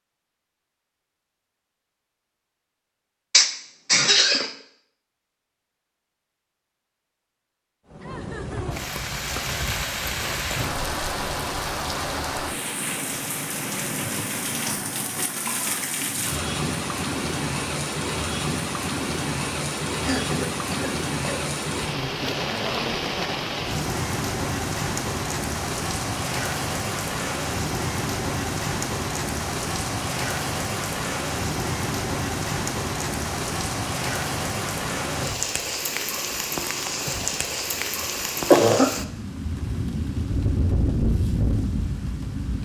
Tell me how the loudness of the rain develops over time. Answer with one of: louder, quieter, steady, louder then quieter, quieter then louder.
steady.